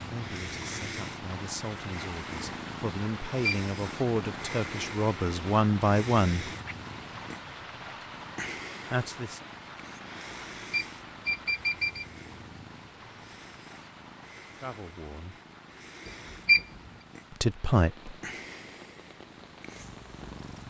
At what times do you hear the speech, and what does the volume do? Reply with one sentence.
You can hear the speech from 0.0 to 6.5 s, getting louder; briefly from 8.9 to 9.4 s; briefly from 14.6 to 15.3 s; and briefly from 17.3 to 18.1 s.